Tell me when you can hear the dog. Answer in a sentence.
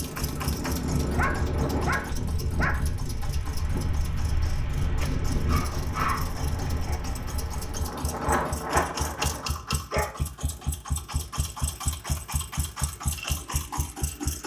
You can hear the dog from 1.1 to 2.9 s, from 5.0 to 7.0 s and from 9.9 to 10.7 s.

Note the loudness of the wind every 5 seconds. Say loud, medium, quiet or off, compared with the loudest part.
loud, loud, off.